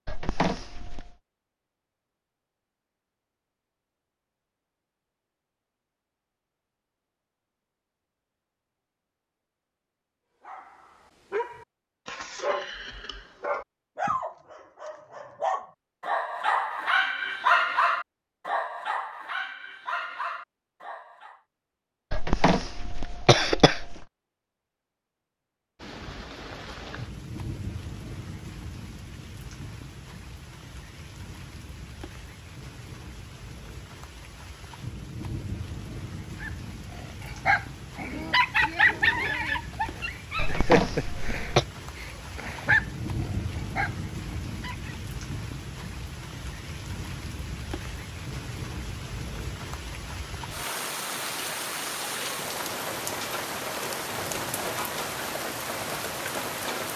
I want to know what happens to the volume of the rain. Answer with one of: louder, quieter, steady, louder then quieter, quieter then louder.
louder.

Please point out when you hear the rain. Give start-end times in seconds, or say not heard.
25.8-56.9.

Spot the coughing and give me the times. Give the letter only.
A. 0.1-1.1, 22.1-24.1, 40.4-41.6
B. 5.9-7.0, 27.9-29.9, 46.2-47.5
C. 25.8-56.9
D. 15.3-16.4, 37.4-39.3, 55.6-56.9
A.